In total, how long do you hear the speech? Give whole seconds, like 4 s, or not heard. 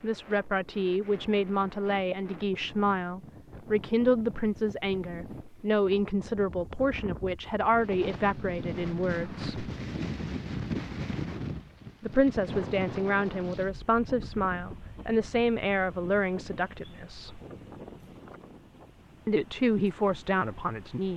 17 s.